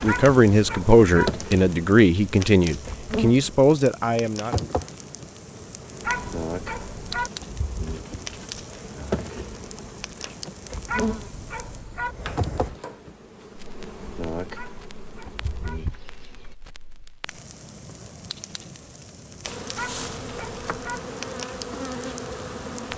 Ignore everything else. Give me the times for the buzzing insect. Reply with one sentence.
The buzzing insect can be heard from 0.0 to 16.6 s and from 19.4 to 22.9 s.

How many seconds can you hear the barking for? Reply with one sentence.
The barking can be heard for 6 seconds in total.